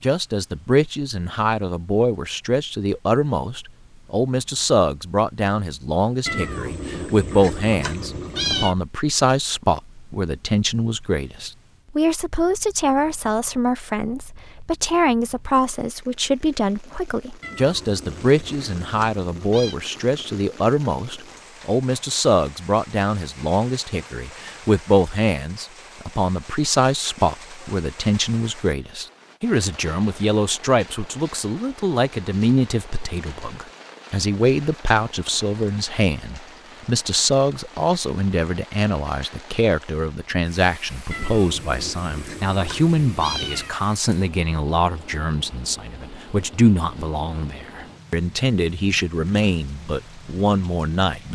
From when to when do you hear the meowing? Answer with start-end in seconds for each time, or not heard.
6.2-8.8, 17.4-19.8, 41.1-43.8.